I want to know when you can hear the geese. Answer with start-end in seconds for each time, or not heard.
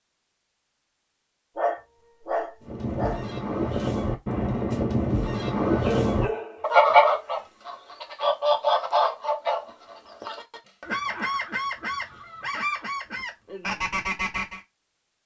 2.6-14.6.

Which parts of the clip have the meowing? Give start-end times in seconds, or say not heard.
not heard.